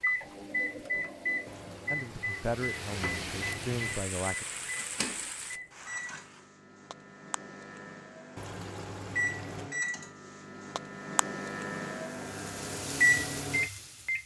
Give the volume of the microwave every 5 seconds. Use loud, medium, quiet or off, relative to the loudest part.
loud, medium, loud.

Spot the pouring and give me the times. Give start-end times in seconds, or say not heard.
1.4-3.9, 8.3-9.7.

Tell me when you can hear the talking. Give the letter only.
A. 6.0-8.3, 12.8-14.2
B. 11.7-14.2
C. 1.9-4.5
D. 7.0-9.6
C.